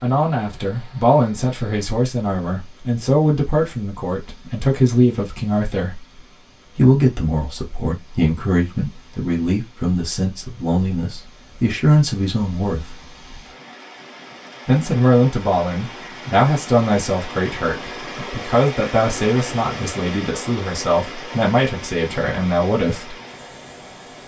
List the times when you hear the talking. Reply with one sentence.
The talking can be heard from 0.0 to 6.0 s, from 6.8 to 12.9 s and from 14.7 to 23.1 s.